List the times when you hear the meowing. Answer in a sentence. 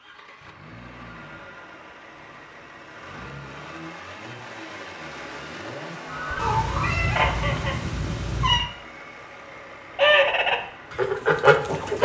You can hear the meowing from 6.3 to 8.7 s.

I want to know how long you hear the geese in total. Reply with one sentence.
The geese can be heard for 4 seconds in total.